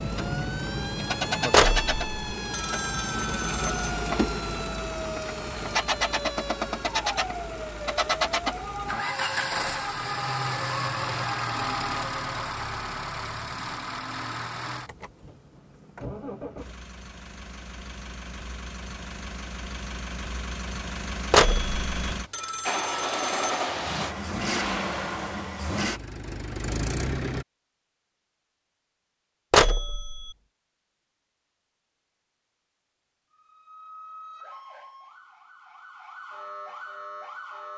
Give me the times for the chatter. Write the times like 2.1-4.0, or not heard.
not heard.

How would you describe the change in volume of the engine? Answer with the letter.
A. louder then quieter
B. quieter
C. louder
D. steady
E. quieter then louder
E.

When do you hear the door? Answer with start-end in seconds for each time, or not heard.
not heard.